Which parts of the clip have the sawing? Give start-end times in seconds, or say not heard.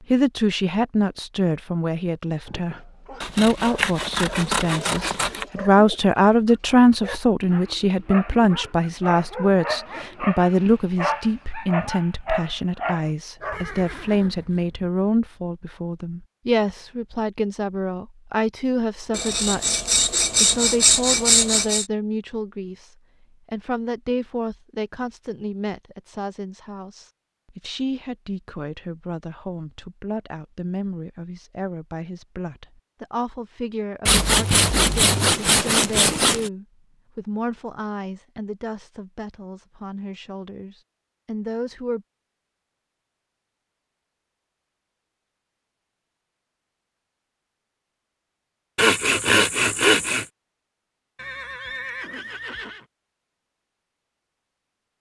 3.2-5.5, 19.1-21.9, 34.0-36.5, 48.8-50.2.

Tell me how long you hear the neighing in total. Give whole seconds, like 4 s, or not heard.
3 s.